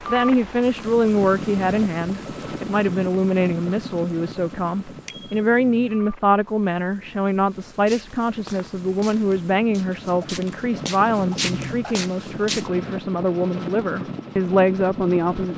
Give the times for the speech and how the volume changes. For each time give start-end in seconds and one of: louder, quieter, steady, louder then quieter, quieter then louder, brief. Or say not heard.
0.1-15.5 steady.